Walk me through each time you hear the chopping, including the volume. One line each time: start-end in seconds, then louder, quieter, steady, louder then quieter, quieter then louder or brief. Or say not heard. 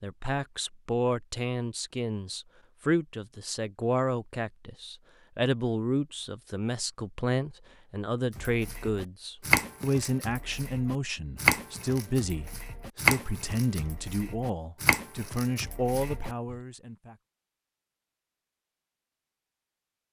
8.3-16.6 quieter then louder.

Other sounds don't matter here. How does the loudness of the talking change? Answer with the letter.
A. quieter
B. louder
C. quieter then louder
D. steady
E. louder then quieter
D.